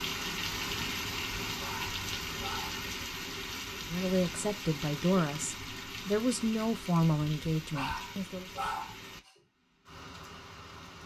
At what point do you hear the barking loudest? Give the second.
9 s.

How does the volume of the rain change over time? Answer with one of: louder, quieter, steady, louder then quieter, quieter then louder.
quieter.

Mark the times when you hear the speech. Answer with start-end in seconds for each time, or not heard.
3.8-8.4.